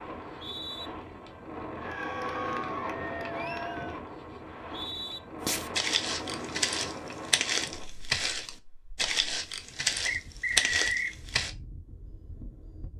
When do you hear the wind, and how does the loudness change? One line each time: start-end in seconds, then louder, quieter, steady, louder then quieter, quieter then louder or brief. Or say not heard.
0.0-12.9 quieter.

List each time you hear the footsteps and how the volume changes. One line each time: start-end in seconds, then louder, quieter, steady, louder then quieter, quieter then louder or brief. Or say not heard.
5.5-11.5 steady.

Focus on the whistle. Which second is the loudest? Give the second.
11 s.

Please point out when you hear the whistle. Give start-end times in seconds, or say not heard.
0.1-0.9, 4.5-5.2, 10.1-11.2.